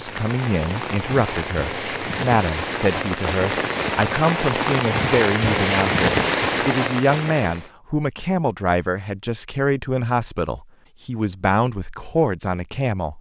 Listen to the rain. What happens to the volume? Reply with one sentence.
The loudness of the rain goes up.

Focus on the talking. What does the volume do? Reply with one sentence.
The volume of the talking stays about the same.